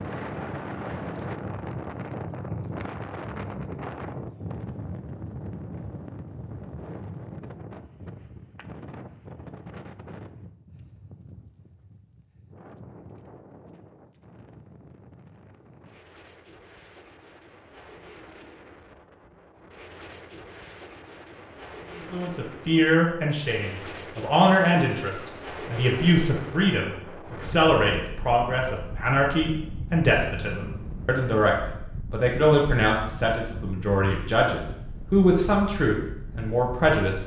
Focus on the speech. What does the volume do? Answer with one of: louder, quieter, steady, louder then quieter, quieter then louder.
steady.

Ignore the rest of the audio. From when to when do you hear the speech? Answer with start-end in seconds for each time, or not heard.
22.1-37.2.